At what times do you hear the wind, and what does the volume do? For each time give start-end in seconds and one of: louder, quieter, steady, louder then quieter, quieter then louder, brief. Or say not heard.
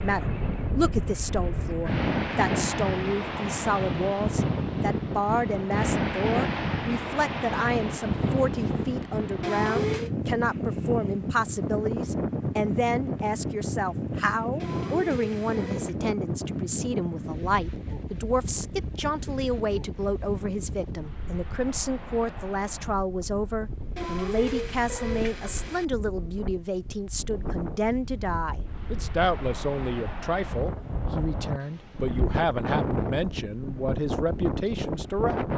0.0-35.5 quieter then louder.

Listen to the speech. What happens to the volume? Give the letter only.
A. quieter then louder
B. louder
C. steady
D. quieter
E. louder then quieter
C.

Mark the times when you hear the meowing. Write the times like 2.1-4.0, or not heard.
9.4-10.1, 14.6-15.9, 23.9-25.9.